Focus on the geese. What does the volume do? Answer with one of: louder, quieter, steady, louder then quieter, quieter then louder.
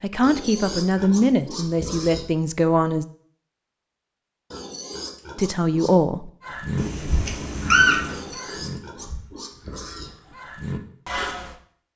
quieter then louder.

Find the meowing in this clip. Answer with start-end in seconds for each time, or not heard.
6.8-8.2.